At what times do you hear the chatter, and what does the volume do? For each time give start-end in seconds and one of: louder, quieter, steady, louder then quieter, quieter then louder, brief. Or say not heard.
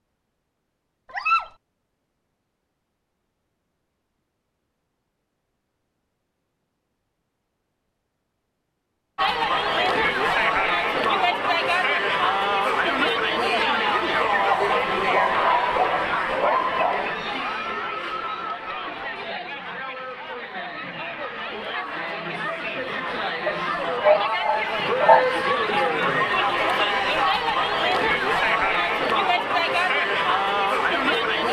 9.2-31.4 quieter then louder.